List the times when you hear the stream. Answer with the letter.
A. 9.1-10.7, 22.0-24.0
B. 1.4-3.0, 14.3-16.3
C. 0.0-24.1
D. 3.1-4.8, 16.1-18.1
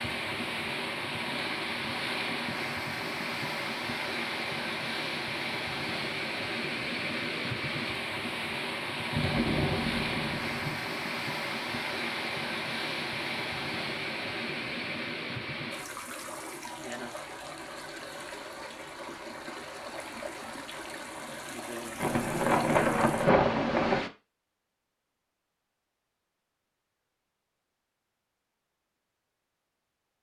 C.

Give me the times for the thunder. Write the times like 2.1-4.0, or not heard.
9.1-10.7, 22.0-24.0.